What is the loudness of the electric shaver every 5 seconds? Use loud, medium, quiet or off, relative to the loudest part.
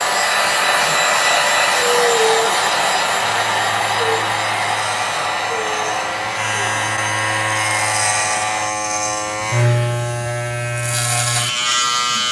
medium, loud, loud.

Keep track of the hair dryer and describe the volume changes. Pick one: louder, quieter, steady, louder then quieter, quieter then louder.
quieter.